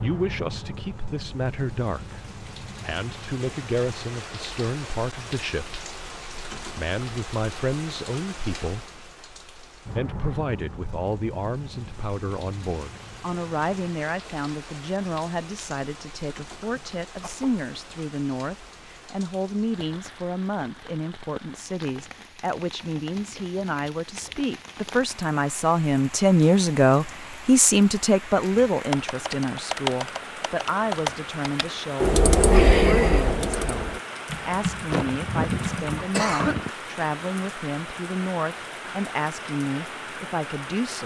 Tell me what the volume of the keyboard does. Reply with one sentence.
The loudness of the keyboard goes up, then down.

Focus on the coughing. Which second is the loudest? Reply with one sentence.
The volume of the coughing peaks at 36 seconds.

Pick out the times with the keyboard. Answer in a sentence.
The keyboard can be heard from 28.9 to 36.2 s.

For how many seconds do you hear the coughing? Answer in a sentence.
You can hear the coughing for 3 seconds altogether.